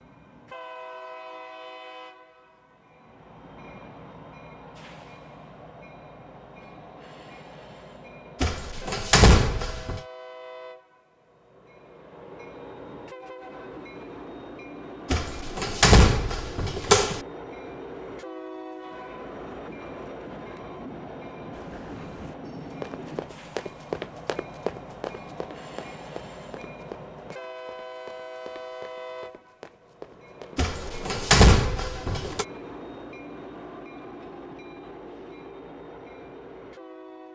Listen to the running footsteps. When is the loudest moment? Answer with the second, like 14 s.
24 s.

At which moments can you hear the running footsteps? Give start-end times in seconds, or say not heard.
21.5-30.7.